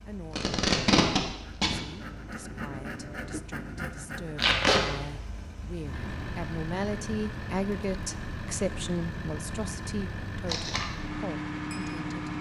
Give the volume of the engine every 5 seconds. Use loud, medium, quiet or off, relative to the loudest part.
quiet, loud, loud.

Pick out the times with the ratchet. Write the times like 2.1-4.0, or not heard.
not heard.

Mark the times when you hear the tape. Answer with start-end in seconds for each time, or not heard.
0.3-1.8, 4.3-4.8, 10.4-10.8.